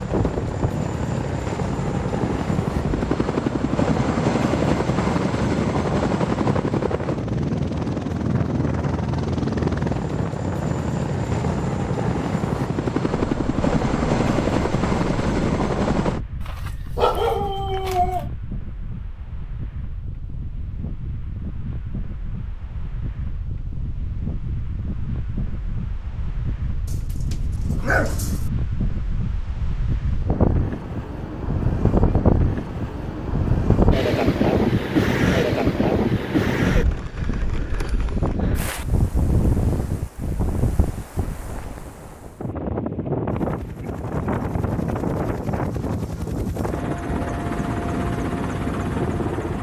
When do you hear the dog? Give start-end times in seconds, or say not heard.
16.4-18.2, 26.9-28.5.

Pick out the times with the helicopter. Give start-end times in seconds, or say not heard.
0.0-16.2, 43.2-49.5.